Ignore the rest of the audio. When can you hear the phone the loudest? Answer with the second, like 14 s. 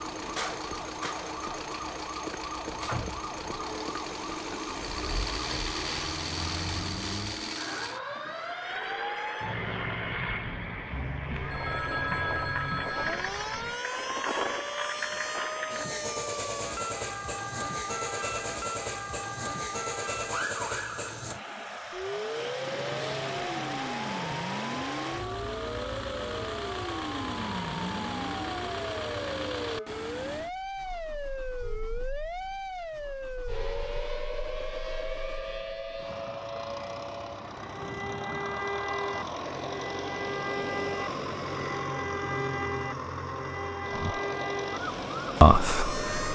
12 s.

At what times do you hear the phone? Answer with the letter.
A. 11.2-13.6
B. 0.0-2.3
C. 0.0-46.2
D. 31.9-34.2
A.